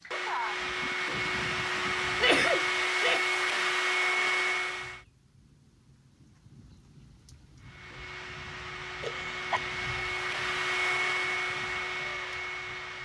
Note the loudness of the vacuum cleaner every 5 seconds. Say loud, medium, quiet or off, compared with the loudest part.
loud, medium, loud.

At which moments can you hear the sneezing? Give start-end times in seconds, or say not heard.
2.2-3.2, 9.0-9.6.